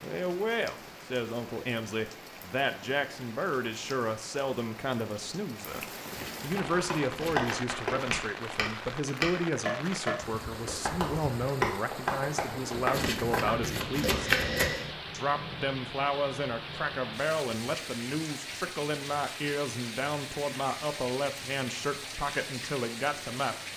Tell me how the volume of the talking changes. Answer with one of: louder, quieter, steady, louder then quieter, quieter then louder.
steady.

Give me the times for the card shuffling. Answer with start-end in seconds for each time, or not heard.
6.1-7.6, 12.9-14.9.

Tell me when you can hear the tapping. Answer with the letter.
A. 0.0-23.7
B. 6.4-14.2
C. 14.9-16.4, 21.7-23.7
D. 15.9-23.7
B.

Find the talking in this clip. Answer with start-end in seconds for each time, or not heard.
0.0-14.2, 15.1-23.6.